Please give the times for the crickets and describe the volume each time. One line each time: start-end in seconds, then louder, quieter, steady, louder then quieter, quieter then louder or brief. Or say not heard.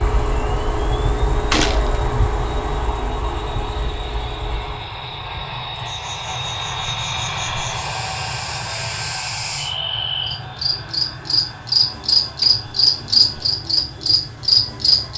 0.0-15.1 quieter then louder.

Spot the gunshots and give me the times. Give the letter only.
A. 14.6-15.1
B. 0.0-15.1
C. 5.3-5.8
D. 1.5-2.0
D.